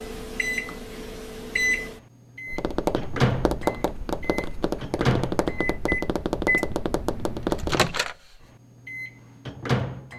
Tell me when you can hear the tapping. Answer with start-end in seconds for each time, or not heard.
2.5-7.8.